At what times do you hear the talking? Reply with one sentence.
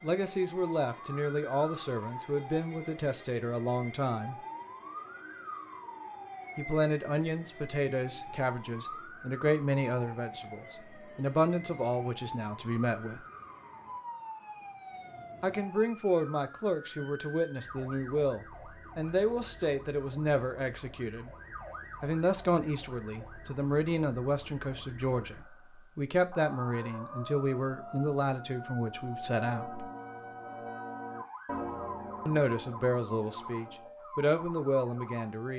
You can hear the talking from 0.0 to 4.3 s, from 6.5 to 13.2 s, from 15.4 to 21.3 s, from 22.0 to 29.9 s and from 32.2 to 35.5 s.